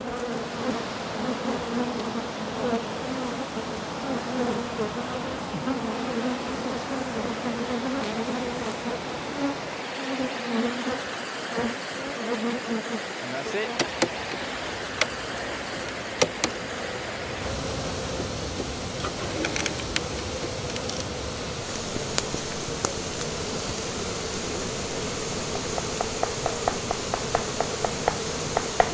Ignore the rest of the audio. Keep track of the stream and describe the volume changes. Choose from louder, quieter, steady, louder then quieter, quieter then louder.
steady.